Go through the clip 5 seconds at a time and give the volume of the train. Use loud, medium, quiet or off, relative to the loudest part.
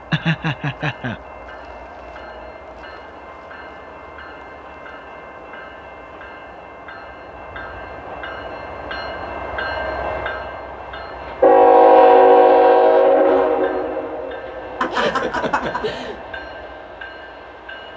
quiet, quiet, loud, quiet.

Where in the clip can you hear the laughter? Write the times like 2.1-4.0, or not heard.
0.1-1.2, 14.8-16.2.